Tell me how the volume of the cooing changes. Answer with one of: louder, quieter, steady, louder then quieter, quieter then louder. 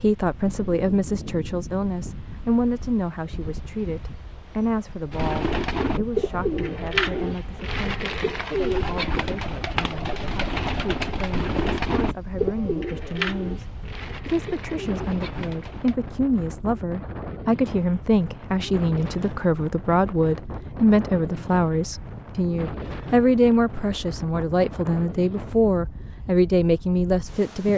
quieter.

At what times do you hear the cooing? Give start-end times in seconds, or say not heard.
5.1-15.9.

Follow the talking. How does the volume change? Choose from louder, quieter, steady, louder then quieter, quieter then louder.
quieter then louder.